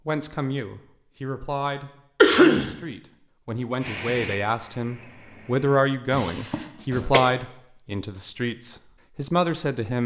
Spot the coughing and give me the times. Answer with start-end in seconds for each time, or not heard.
2.2-2.7, 6.1-7.2.